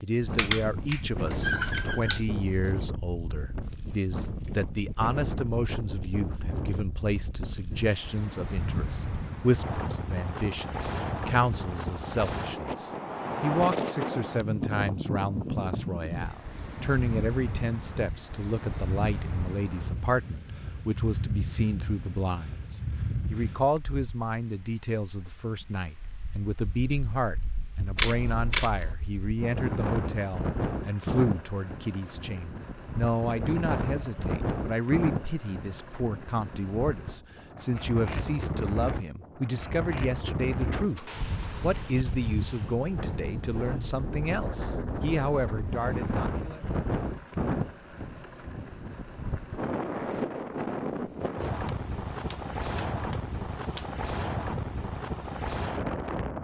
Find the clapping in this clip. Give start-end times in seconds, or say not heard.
not heard.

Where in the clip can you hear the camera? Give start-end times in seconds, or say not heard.
0.3-2.7, 27.9-28.9, 51.4-53.9.